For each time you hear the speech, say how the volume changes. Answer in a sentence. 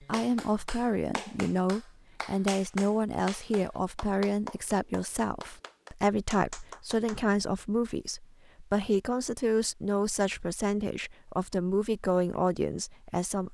The speech can be heard from 0.0 to 13.4 s, at a steady volume.